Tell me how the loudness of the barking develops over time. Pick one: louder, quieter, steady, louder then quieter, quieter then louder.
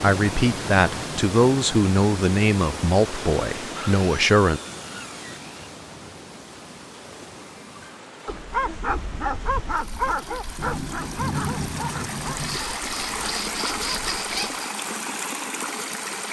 quieter.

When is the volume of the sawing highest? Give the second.
14 s.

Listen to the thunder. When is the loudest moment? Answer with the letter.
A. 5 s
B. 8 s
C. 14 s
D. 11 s
D.